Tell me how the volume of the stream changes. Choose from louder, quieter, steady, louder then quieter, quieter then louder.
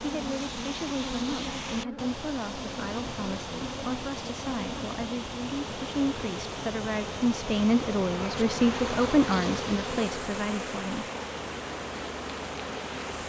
steady.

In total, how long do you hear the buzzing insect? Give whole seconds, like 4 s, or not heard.
13 s.